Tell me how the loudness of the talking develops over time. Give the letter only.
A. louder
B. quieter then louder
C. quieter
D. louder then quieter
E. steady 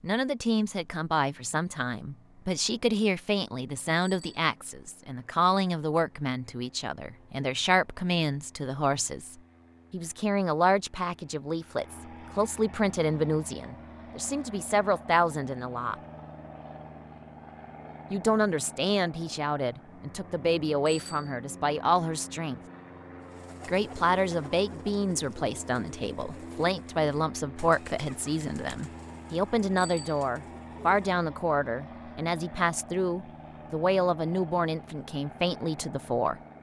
E.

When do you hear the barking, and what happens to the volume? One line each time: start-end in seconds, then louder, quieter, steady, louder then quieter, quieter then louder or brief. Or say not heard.
not heard.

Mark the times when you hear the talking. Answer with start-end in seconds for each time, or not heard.
0.0-15.9, 18.1-22.6, 23.6-36.4.